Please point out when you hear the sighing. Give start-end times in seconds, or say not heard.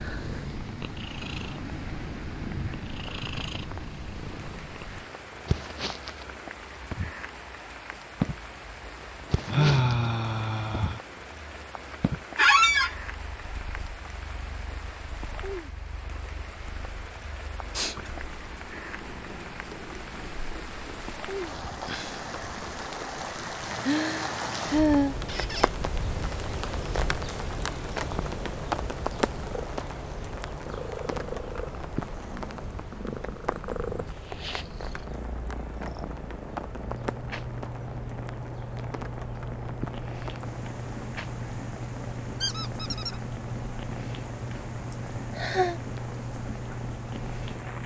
9.4-11.0, 23.8-25.1, 44.9-45.8.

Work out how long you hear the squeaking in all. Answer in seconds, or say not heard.
2 s.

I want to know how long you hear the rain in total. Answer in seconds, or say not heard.
48 s.